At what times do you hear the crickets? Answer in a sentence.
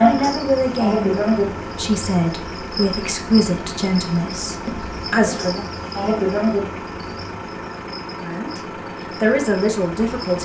The crickets can be heard from 0.0 to 10.3 s.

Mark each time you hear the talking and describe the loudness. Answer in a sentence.
You can hear the talking from 0.0 to 5.7 s, at a steady volume; briefly from 8.2 to 8.6 s; and briefly from 9.2 to 10.3 s.